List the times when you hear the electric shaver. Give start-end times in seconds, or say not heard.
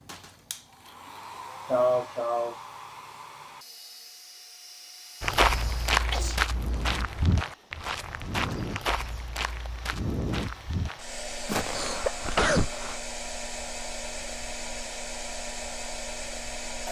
not heard.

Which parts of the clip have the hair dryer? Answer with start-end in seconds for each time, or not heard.
0.0-16.8.